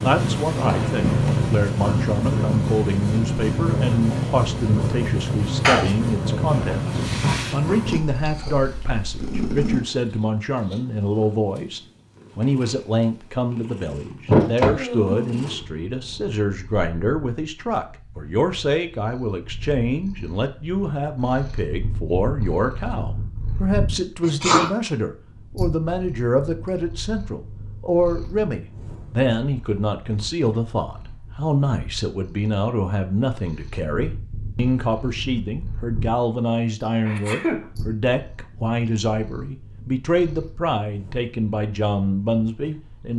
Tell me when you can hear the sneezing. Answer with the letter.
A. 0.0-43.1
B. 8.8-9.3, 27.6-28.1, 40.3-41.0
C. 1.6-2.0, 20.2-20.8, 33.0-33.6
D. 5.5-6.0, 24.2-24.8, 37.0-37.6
D.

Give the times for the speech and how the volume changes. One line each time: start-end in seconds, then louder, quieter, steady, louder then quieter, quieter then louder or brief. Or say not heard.
0.0-43.1 steady.